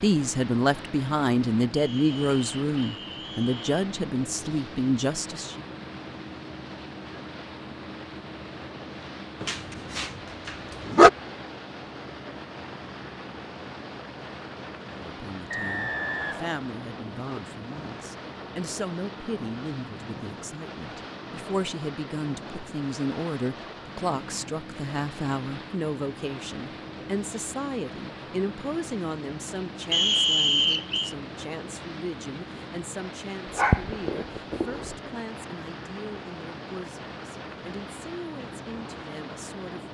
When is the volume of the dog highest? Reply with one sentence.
The volume of the dog peaks at 11 seconds.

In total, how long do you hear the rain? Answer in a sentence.
The rain can't be heard in this clip.